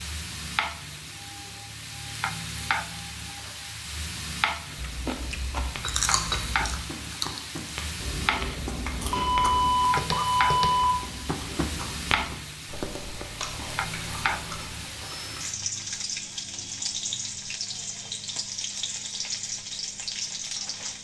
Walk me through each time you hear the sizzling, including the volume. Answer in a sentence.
You can hear the sizzling from 0.0 to 20.9 s, at a steady volume.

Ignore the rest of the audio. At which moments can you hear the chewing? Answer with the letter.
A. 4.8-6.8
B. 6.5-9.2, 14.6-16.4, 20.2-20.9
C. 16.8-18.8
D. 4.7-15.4
D.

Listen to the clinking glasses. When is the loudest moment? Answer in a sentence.
The loudest moment of the clinking glasses is at 6 seconds.